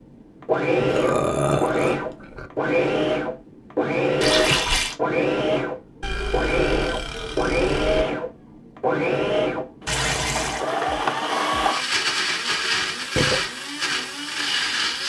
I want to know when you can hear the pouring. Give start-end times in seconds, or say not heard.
4.2-5.0, 9.8-10.7.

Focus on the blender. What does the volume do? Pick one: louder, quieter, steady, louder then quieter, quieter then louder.
steady.